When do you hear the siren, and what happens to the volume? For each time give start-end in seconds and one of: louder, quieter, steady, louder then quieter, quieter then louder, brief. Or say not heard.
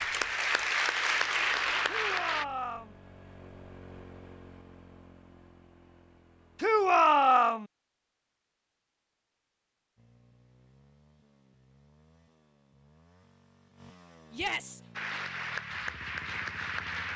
not heard.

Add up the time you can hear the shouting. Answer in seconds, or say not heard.
3 s.